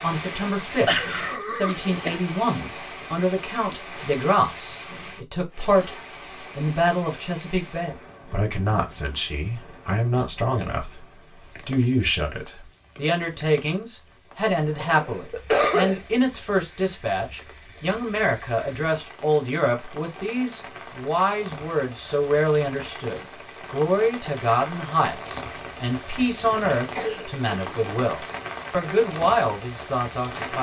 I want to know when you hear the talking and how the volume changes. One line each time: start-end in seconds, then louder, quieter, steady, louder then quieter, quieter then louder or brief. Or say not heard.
0.0-11.1 steady
11.7-30.5 steady.